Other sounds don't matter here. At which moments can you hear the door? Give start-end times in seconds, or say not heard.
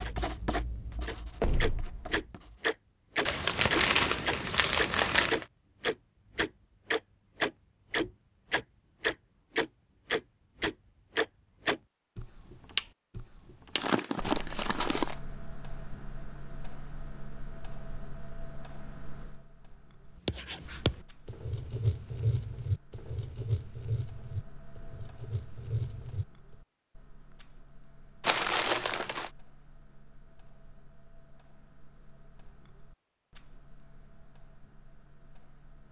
1.4-2.2.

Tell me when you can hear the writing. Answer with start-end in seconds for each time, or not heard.
0.0-2.7, 20.2-26.2.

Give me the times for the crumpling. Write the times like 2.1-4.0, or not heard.
3.2-5.5, 13.8-15.2, 28.2-29.3.